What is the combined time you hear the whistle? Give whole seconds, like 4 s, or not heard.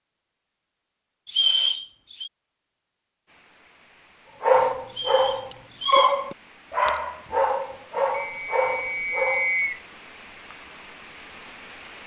4 s.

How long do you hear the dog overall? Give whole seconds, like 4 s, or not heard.
5 s.